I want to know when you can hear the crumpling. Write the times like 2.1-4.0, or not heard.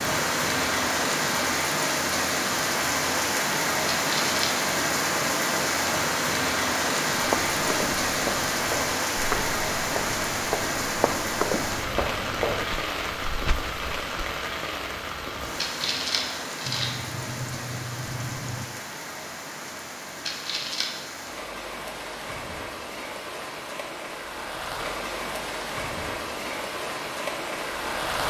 4.0-4.5, 15.6-16.9, 20.2-20.9.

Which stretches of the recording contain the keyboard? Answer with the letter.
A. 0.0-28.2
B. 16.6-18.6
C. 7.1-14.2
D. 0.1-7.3
B.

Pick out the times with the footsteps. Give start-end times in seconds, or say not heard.
7.1-14.2.